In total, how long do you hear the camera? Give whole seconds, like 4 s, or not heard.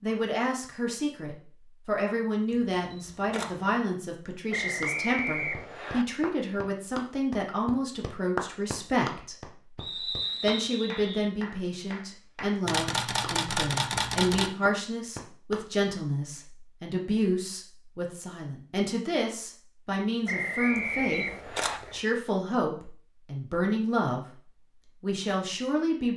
4 s.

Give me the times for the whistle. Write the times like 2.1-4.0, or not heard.
4.5-6.0, 9.8-11.3, 20.2-21.8.